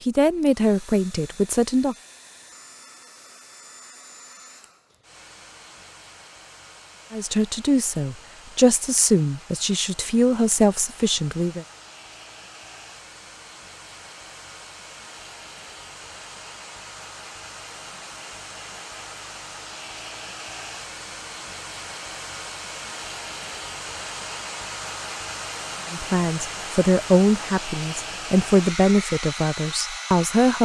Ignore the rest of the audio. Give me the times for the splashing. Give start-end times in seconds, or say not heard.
not heard.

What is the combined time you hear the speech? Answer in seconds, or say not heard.
11 s.